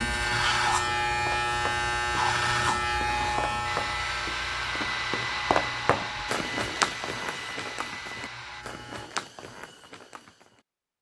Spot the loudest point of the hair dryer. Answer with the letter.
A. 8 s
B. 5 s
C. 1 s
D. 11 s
B.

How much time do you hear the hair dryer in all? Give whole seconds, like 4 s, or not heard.
5 s.